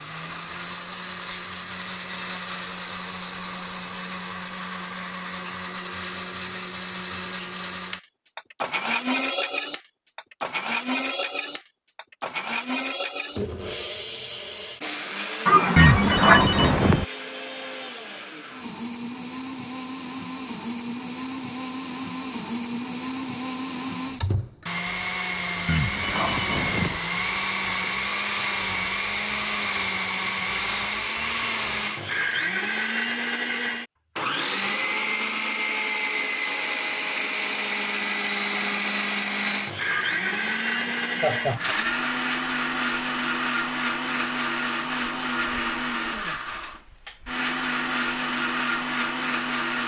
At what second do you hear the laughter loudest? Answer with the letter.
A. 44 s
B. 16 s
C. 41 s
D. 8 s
B.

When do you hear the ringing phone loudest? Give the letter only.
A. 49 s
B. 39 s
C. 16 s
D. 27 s
C.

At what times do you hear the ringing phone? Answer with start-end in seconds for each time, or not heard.
15.8-17.1, 25.6-27.0.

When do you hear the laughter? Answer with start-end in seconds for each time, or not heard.
15.4-16.6, 39.9-41.8.